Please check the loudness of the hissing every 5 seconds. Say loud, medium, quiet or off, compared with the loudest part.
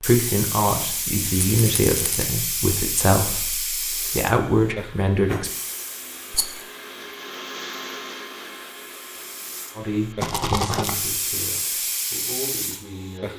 loud, medium, loud.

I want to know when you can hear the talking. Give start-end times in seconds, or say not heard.
0.0-5.5, 9.8-13.3.